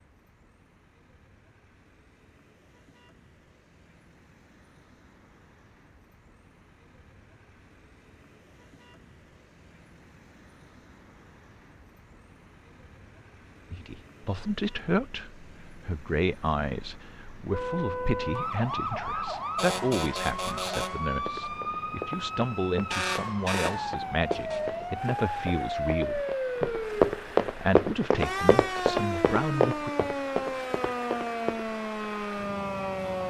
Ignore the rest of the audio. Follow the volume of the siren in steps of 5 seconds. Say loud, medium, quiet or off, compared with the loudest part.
off, off, off, loud, loud, loud, loud.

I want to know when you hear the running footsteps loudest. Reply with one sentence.
The loudest moment of the running footsteps is at 27 seconds.